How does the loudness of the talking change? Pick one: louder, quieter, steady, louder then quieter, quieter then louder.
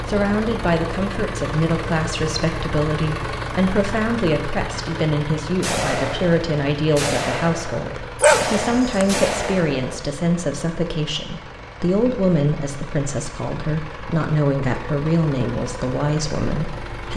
steady.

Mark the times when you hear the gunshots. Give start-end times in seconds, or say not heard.
5.6-10.0.